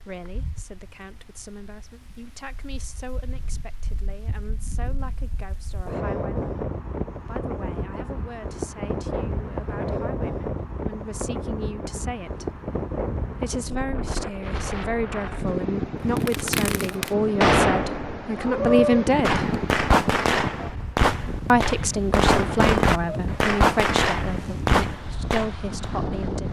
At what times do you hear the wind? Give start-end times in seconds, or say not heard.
0.0-26.4.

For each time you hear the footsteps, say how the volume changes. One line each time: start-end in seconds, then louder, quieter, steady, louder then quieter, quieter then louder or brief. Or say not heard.
not heard.